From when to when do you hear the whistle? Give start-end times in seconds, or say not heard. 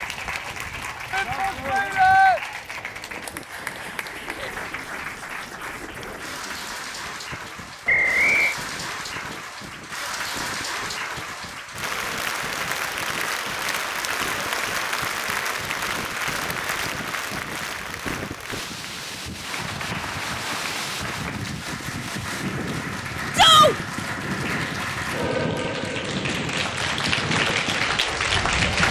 7.8-8.6.